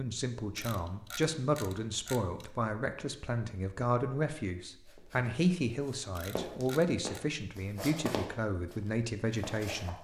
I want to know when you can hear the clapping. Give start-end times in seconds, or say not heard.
not heard.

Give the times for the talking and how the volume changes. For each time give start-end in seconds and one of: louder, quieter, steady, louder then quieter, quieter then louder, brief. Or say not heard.
0.0-10.0 steady.